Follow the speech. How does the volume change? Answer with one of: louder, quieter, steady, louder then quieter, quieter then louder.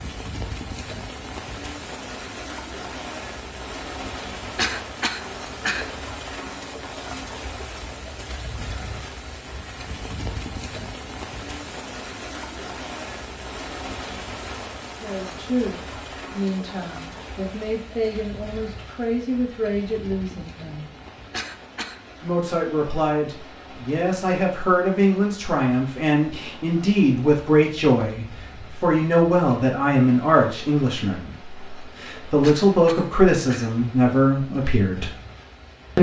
louder.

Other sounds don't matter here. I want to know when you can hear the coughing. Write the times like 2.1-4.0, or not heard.
4.5-5.9, 21.3-22.0, 32.4-33.8.